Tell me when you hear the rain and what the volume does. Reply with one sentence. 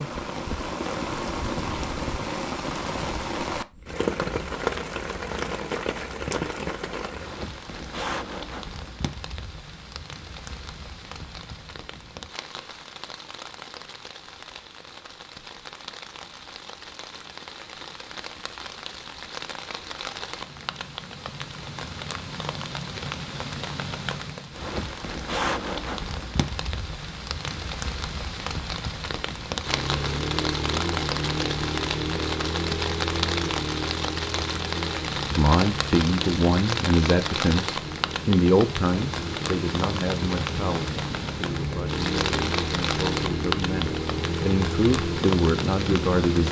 The rain can be heard from 0.0 to 46.4 s, getting quieter then louder.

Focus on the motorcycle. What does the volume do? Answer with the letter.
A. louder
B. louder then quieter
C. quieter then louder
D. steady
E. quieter
C.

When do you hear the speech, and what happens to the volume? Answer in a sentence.
You can hear the speech from 35.3 to 46.4 s, getting quieter then louder.